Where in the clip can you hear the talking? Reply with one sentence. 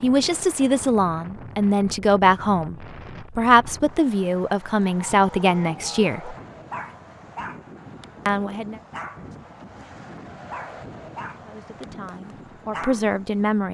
The talking can be heard from 0.0 to 6.3 s, from 8.2 to 8.8 s and from 11.4 to 13.6 s.